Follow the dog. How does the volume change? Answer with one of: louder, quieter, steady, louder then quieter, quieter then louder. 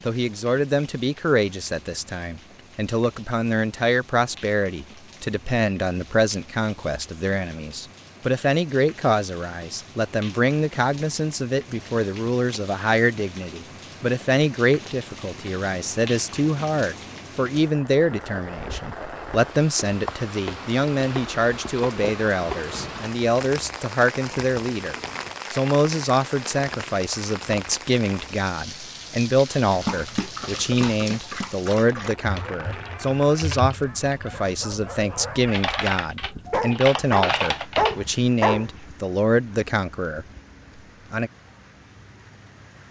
quieter then louder.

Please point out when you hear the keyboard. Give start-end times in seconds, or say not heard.
32.2-38.0.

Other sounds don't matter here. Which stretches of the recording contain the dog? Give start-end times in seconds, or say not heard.
29.6-38.6.